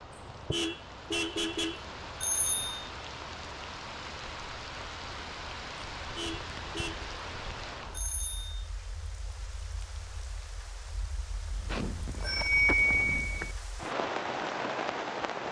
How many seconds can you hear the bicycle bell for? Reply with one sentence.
The bicycle bell can be heard for 3 seconds in total.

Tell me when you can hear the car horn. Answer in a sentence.
The car horn can be heard from 0.1 to 1.9 s, from 6.0 to 7.0 s and from 11.5 to 12.3 s.